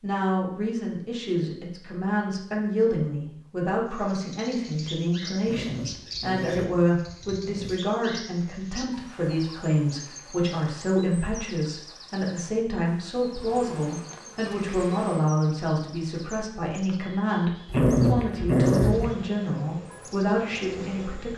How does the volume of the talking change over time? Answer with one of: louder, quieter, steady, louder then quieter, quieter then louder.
steady.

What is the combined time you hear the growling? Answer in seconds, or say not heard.
4 s.